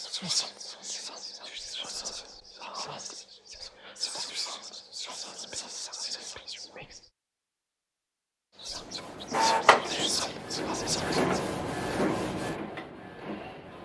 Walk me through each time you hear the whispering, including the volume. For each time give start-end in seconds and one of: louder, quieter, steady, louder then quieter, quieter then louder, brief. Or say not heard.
0.0-7.0 steady
8.6-11.4 brief.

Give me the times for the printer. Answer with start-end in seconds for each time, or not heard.
8.8-13.7.